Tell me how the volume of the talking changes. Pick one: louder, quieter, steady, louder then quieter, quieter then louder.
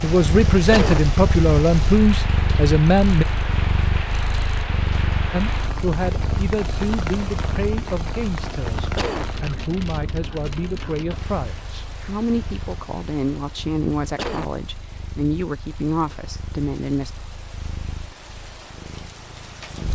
quieter.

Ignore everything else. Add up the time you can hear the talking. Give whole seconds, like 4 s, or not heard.
15 s.